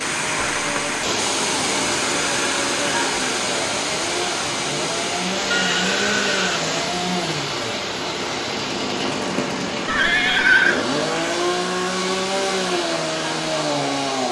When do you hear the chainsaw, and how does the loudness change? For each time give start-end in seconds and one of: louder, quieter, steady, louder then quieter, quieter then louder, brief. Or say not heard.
0.0-14.2 louder.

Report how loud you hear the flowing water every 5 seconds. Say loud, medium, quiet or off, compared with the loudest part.
loud, loud, medium.